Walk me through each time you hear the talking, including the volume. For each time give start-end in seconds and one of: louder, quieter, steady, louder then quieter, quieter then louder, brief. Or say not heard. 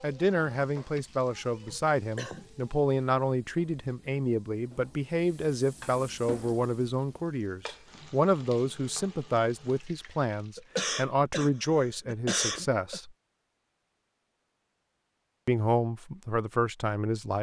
0.0-13.1 steady
15.4-17.3 brief.